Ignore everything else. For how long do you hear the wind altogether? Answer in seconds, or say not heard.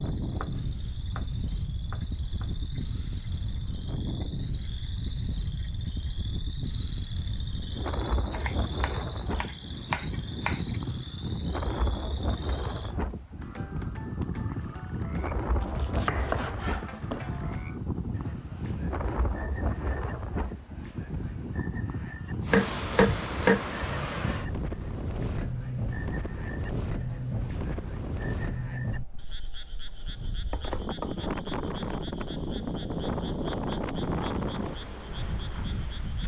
36 s.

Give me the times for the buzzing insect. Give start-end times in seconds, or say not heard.
not heard.